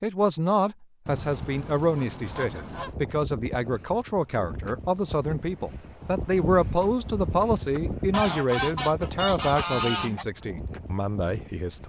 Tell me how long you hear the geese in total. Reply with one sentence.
You can hear the geese for 4 seconds altogether.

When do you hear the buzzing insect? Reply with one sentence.
The buzzing insect can't be heard in this clip.